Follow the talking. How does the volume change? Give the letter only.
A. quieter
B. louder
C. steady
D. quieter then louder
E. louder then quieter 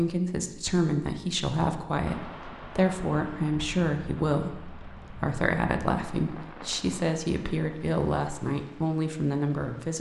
C.